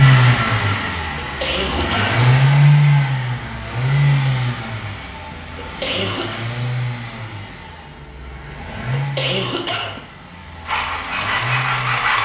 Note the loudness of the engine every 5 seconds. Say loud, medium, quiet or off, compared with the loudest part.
loud, quiet, quiet.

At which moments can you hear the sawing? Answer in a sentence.
The sawing can be heard from 10.7 to 12.1 s.